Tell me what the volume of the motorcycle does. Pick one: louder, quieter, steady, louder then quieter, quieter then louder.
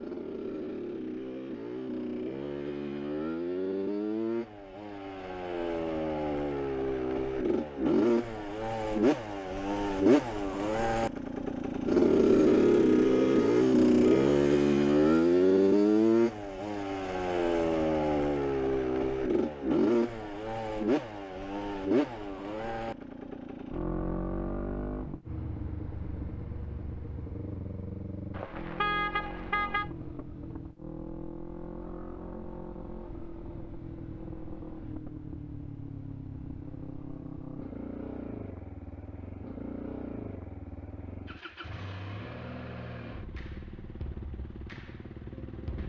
louder then quieter.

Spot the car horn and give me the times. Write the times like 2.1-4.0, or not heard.
12.4-14.4, 28.3-29.9.